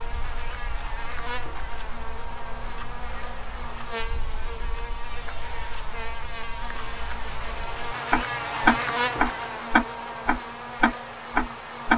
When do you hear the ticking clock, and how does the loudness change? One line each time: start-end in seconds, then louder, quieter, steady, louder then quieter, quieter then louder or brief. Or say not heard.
0.0-11.9 louder.